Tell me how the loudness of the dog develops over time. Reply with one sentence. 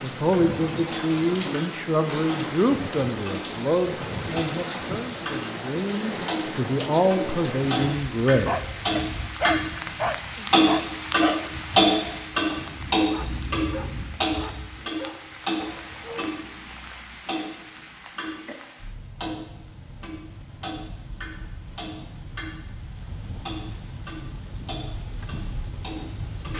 The volume of the dog goes down.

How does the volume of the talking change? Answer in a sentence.
The loudness of the talking goes down, then up.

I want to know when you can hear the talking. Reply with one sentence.
The talking can be heard from 0.0 to 8.6 s.